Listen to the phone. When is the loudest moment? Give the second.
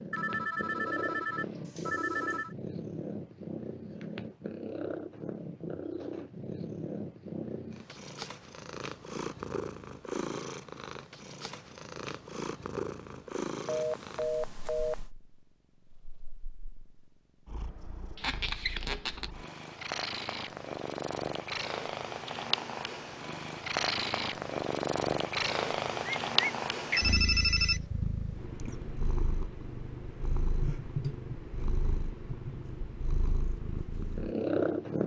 27 s.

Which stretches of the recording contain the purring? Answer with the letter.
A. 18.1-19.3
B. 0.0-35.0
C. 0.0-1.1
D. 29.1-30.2
B.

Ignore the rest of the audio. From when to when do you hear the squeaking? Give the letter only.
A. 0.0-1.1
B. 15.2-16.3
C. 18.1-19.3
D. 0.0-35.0
C.